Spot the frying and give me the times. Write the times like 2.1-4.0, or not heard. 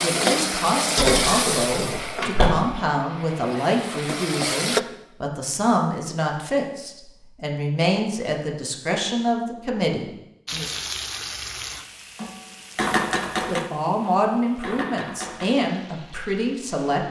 0.0-4.8, 10.4-17.0.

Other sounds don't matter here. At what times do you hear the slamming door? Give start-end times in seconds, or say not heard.
0.9-2.5.